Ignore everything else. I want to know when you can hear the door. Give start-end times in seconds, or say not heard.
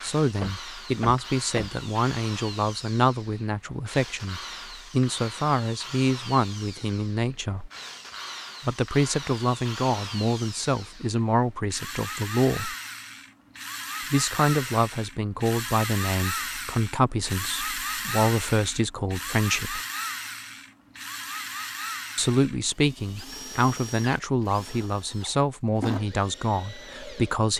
0.4-1.8.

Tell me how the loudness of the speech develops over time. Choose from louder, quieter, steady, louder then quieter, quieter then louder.
steady.